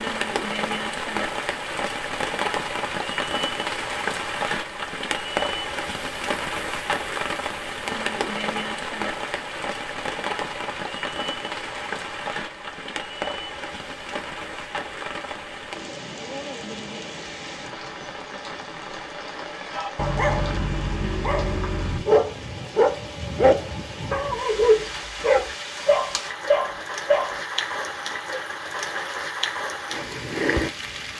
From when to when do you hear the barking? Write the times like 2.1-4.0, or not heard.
19.7-27.4.